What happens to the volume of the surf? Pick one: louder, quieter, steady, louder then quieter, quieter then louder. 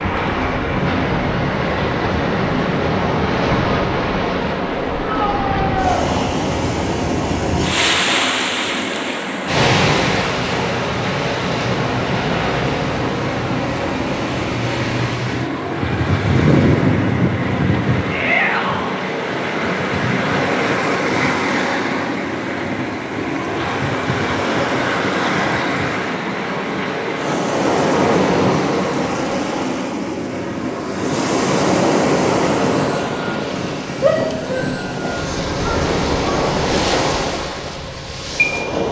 steady.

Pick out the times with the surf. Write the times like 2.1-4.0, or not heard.
0.0-38.8.